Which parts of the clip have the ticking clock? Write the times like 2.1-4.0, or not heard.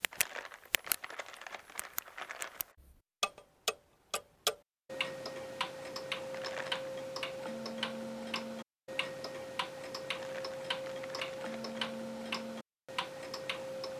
0.0-13.9.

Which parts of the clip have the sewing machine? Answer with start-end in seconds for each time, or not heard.
not heard.